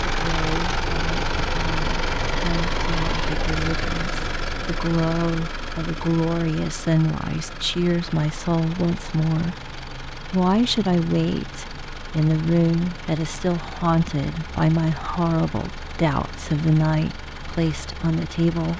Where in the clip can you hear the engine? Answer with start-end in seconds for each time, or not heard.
0.0-18.7.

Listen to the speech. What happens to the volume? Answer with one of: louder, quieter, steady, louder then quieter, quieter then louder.
louder.